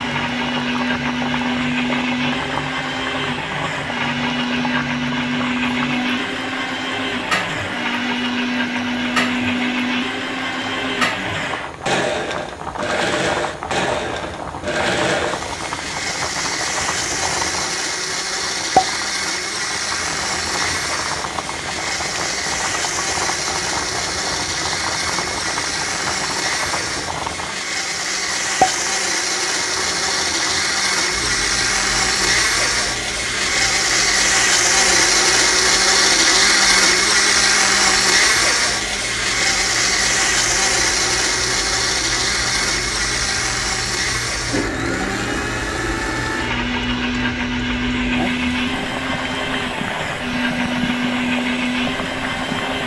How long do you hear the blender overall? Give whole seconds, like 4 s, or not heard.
53 s.